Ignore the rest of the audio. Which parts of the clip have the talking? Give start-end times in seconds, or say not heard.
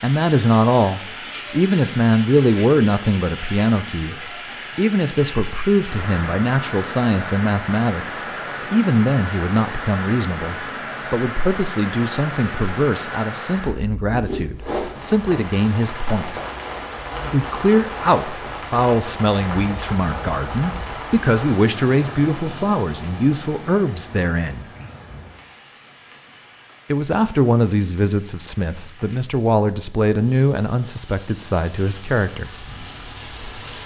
0.0-16.4, 17.3-24.6, 26.9-32.5.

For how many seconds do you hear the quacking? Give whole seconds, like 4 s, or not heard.
not heard.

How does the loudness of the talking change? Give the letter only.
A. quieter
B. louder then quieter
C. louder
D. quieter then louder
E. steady
E.